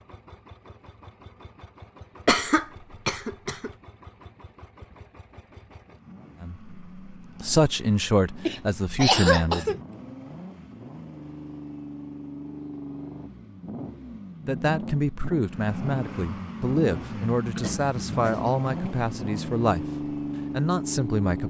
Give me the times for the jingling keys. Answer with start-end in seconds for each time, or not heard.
not heard.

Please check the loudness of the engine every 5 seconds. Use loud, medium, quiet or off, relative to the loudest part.
quiet, quiet, medium, loud, loud.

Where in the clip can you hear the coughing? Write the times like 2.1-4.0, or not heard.
2.2-3.7, 8.4-9.8, 17.5-18.9.